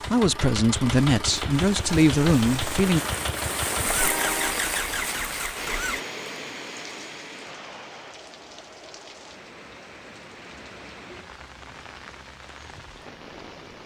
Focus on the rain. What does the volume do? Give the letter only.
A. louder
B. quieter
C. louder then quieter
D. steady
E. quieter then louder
B.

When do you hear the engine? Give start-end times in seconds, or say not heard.
0.0-6.0.